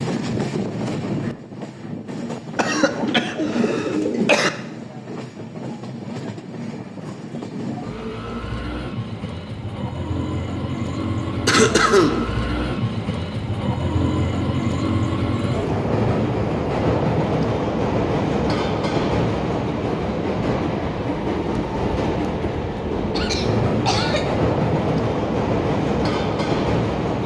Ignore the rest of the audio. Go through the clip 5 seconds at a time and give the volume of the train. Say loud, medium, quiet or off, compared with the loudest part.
medium, medium, loud, loud, loud, loud.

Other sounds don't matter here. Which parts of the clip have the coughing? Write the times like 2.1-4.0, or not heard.
2.5-4.5, 11.4-12.2, 23.1-24.3.